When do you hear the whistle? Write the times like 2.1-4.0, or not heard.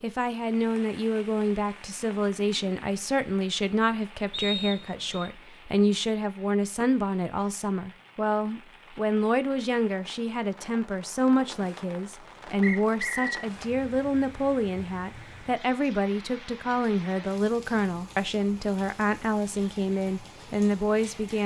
4.3-5.3, 12.6-13.4.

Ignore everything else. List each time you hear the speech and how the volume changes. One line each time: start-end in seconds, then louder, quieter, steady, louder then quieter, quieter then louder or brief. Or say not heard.
0.0-21.4 steady.